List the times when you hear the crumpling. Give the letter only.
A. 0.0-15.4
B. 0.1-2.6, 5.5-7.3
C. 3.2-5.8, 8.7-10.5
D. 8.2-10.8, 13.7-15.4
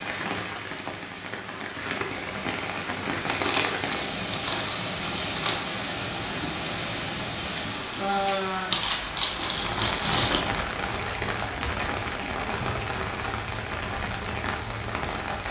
C.